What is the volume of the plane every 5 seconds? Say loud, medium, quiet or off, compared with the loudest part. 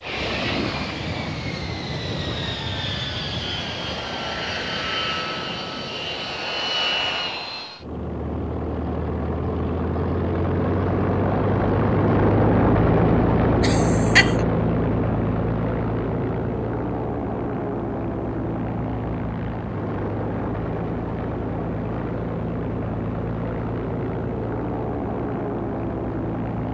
medium, medium, loud, medium, medium, medium.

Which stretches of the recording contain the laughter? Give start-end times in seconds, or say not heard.
13.6-14.4.